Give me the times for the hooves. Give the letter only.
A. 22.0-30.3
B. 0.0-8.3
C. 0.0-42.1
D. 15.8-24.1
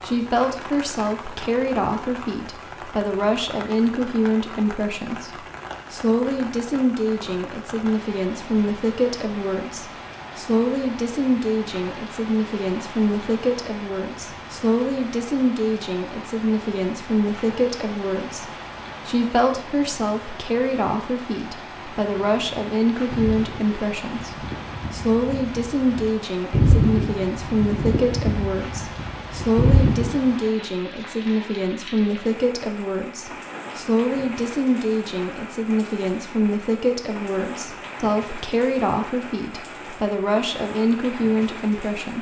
A.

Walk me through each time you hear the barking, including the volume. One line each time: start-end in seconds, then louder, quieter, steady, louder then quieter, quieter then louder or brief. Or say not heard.
not heard.